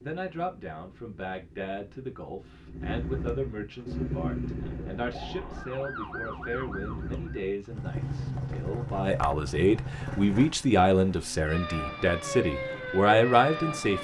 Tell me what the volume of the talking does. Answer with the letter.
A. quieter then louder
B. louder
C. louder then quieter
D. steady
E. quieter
B.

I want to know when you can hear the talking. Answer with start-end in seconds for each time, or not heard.
0.0-14.0.